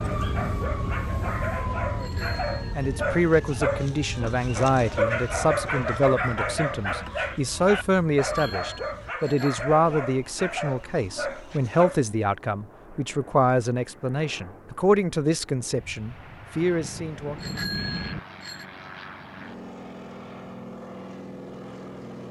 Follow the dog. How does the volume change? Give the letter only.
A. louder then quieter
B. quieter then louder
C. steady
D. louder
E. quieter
A.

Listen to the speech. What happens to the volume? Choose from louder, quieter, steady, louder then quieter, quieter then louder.
steady.